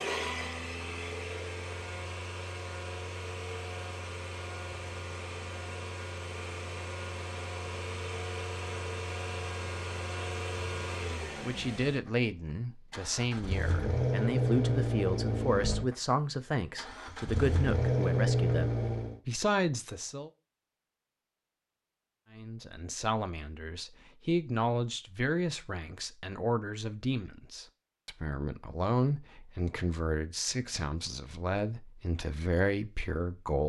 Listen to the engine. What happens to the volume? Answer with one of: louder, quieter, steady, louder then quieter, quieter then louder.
louder.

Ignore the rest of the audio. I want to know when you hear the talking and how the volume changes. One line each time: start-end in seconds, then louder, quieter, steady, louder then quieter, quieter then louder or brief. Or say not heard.
11.4-20.3 steady
22.3-33.6 steady.